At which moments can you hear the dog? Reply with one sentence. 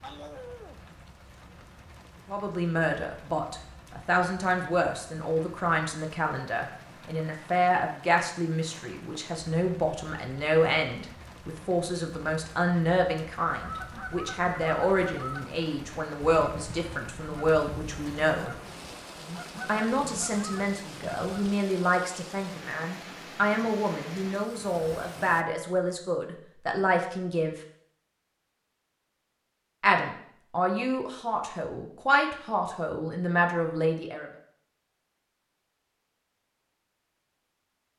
The dog can be heard from 0.0 to 0.8 s.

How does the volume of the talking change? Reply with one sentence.
The loudness of the talking stays about the same.